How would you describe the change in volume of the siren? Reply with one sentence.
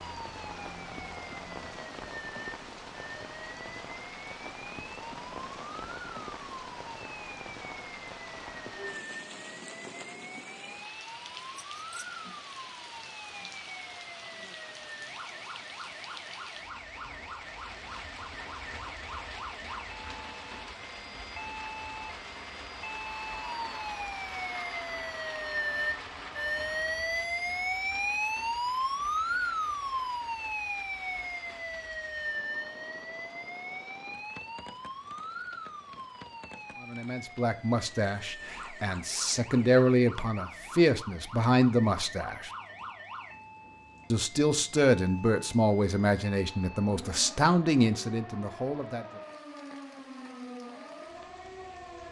The loudness of the siren goes up, then down.